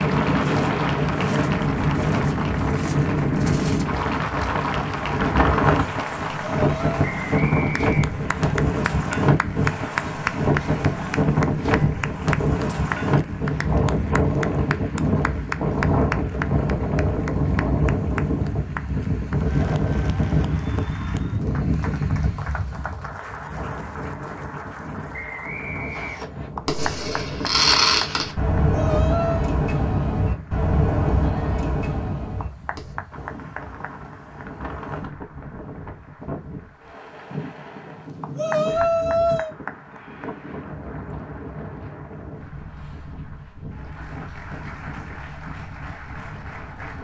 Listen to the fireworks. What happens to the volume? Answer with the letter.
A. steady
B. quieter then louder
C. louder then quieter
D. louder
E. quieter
C.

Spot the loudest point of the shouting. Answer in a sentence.
The volume of the shouting peaks at 39 seconds.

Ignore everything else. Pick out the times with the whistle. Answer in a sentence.
The whistle can be heard from 7.0 to 8.6 s and from 25.1 to 26.5 s.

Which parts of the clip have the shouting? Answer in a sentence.
The shouting can be heard from 6.5 to 7.0 s, from 28.7 to 29.6 s and from 38.4 to 39.5 s.